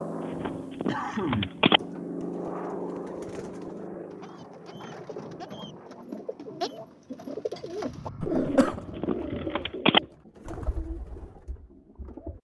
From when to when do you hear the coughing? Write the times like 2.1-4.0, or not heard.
0.8-1.6, 8.2-8.8.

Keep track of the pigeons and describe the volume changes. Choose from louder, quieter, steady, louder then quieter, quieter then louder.
louder then quieter.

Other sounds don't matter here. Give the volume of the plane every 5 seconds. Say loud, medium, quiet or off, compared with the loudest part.
loud, medium, off.